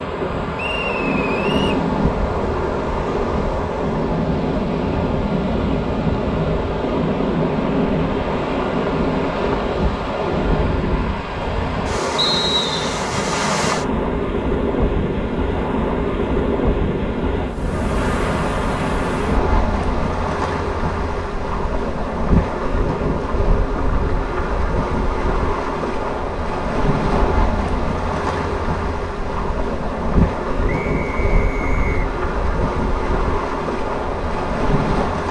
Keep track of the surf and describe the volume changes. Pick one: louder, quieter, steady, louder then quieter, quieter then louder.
steady.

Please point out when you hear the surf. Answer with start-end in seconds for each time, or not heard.
0.0-35.2.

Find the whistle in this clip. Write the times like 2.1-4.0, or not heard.
0.6-1.8, 12.2-12.9, 30.6-32.0.